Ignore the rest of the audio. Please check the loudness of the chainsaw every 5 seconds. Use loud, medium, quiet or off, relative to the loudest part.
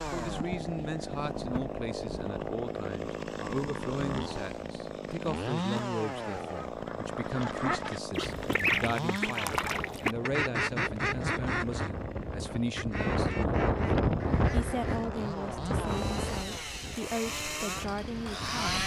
loud, loud, medium, loud.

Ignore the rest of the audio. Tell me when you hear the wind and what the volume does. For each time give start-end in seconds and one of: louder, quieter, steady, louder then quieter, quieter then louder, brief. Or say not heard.
8.2-18.8 louder then quieter.